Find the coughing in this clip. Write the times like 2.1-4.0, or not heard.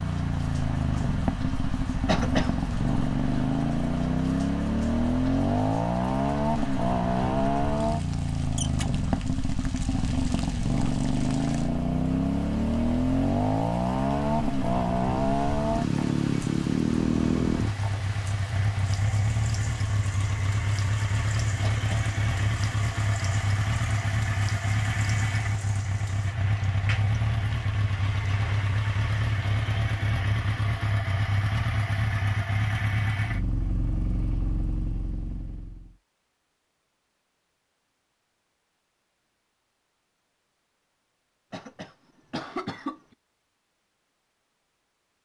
2.0-2.5, 21.6-22.1, 41.5-43.0.